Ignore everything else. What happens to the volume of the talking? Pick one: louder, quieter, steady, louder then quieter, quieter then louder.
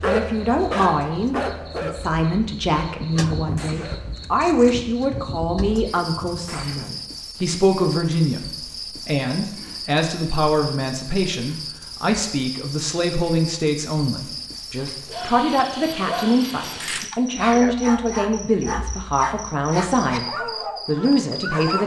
steady.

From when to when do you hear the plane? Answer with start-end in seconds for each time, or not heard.
not heard.